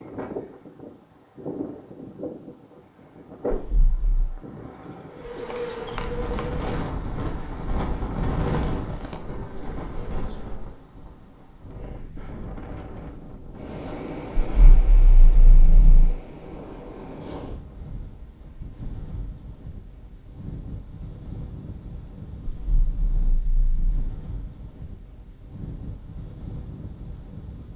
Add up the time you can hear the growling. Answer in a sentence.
The growling can be heard for 4 seconds in total.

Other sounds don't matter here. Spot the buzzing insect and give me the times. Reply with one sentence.
You can hear the buzzing insect from 5.1 to 10.8 s.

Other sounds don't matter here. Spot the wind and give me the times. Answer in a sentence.
You can hear the wind from 0.0 to 27.7 s.